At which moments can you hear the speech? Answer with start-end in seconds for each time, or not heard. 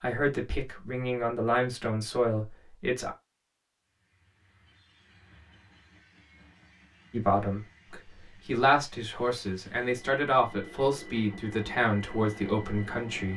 0.0-3.1, 7.1-13.3.